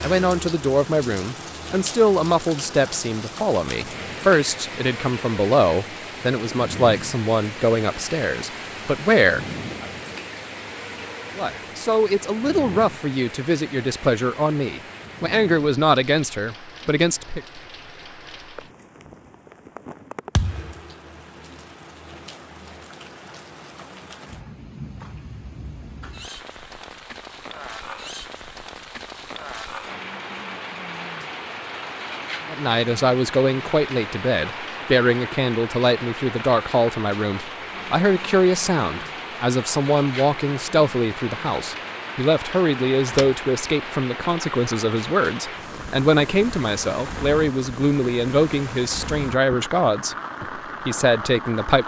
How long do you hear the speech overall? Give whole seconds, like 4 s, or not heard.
35 s.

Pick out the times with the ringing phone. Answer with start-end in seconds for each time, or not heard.
not heard.